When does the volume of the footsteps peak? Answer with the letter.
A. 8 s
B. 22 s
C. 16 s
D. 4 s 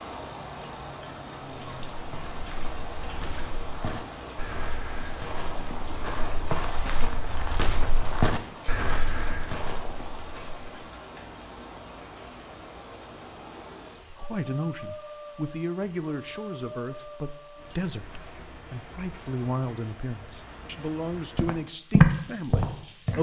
B.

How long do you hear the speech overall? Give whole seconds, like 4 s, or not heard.
9 s.